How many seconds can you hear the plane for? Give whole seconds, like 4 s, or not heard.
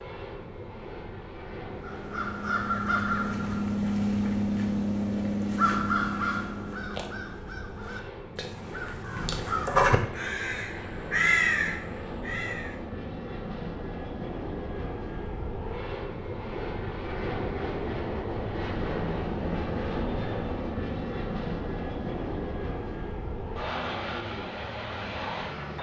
26 s.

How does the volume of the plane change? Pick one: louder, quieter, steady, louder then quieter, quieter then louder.
louder.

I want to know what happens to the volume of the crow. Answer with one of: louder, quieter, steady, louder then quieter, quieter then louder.
quieter then louder.